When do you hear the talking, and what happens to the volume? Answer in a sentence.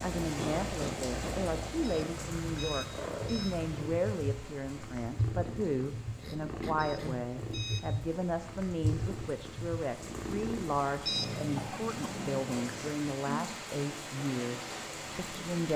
You can hear the talking from 0.0 to 15.7 s, at a steady volume.